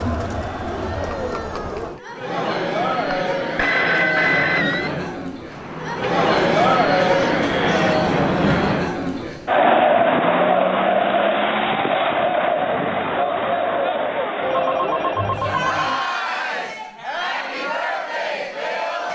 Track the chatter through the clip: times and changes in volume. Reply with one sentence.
You can hear the chatter from 0.0 to 19.0 s, getting louder then quieter.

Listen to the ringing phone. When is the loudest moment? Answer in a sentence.
The volume of the ringing phone peaks at 4 seconds.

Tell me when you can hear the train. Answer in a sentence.
The train can be heard from 5.3 to 8.9 s.